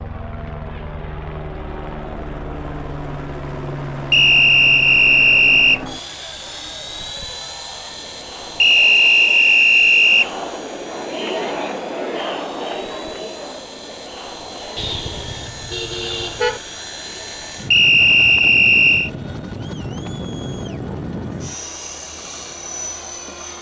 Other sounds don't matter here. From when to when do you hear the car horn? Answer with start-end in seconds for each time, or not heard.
14.8-16.6.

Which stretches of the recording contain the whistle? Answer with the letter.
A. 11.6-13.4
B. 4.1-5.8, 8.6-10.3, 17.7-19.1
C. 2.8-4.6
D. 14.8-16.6
B.